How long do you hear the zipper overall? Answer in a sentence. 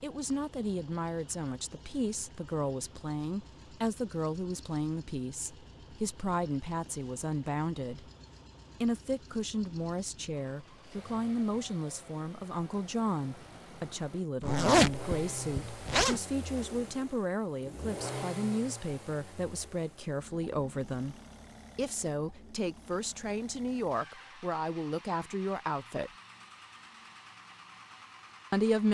The zipper can be heard for 2 seconds in total.